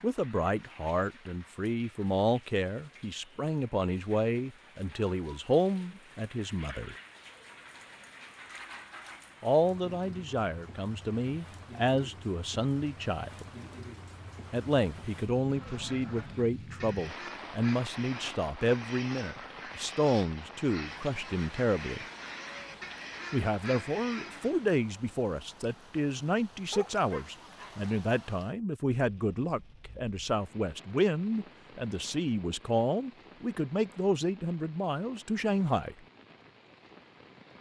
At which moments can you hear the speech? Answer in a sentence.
You can hear the speech from 0.0 to 7.0 s, from 9.4 to 13.5 s, from 14.5 to 22.1 s and from 23.3 to 36.0 s.